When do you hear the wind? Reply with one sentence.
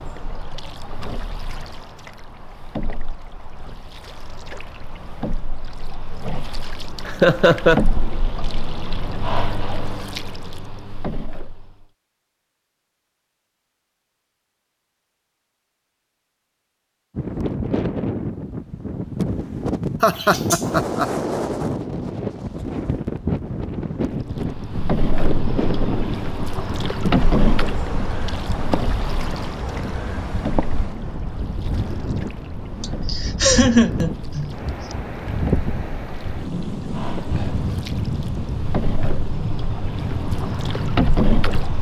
The wind can be heard from 17.1 to 41.7 s.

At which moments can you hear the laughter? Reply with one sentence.
You can hear the laughter from 7.0 to 7.8 s, from 20.0 to 21.1 s and from 32.8 to 34.5 s.